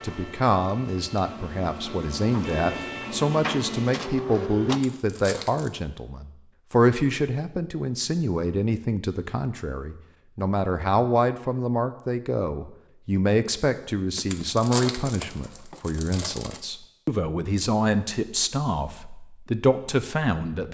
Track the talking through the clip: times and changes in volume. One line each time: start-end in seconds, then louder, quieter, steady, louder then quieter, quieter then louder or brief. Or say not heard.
0.0-20.6 steady.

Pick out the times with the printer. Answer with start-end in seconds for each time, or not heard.
0.0-4.8.